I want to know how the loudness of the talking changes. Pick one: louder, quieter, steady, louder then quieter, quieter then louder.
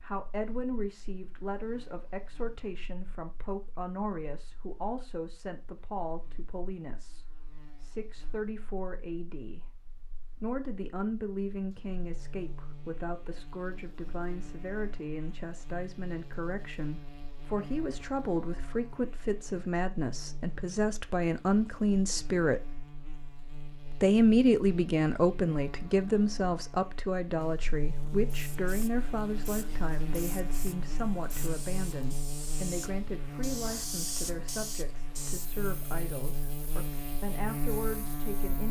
louder then quieter.